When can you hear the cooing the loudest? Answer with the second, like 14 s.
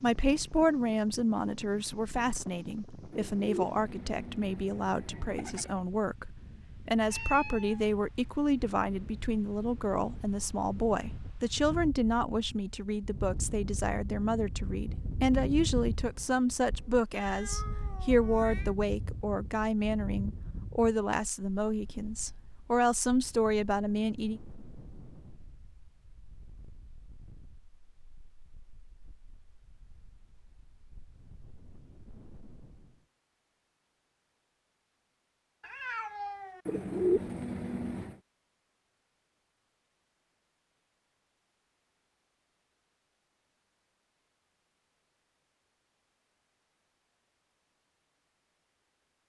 37 s.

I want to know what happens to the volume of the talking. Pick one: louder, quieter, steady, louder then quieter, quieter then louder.
steady.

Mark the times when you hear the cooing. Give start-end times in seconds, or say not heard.
3.1-5.8, 36.6-38.1.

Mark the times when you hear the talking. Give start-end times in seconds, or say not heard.
0.0-24.4.